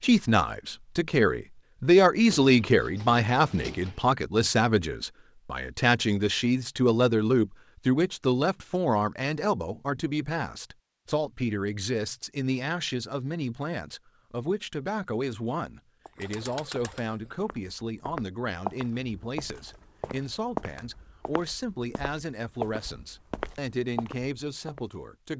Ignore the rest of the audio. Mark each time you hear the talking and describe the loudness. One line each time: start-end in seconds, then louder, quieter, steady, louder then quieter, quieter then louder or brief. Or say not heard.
0.0-25.3 quieter.